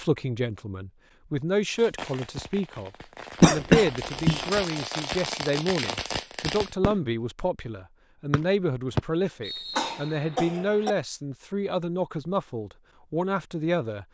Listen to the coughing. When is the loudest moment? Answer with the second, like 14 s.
4 s.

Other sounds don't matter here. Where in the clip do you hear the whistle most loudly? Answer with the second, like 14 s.
9 s.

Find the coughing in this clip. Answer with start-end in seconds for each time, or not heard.
3.4-4.5, 9.8-10.9.